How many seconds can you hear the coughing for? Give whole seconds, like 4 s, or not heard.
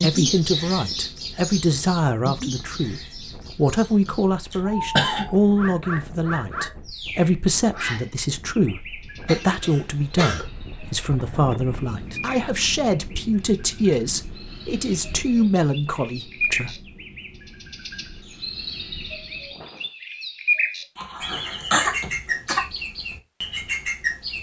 4 s.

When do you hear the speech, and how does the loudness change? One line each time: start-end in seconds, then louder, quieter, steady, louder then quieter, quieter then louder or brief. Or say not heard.
0.0-16.8 steady.